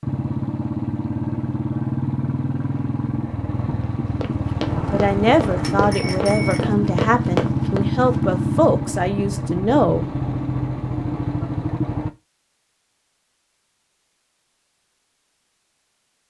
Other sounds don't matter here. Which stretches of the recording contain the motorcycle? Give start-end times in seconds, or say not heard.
0.0-12.1.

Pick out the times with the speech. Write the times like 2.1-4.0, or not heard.
4.9-10.1.